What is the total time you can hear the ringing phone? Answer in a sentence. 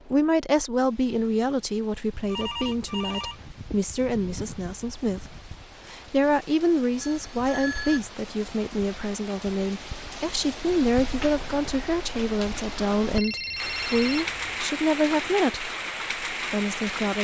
The ringing phone can be heard for 4 seconds in total.